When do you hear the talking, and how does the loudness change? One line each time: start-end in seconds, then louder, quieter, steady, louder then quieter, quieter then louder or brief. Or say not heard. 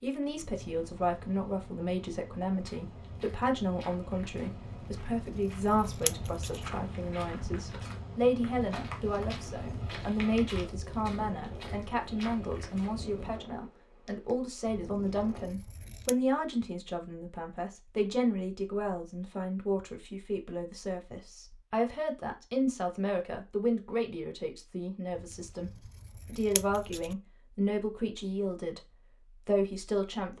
0.0-30.3 steady.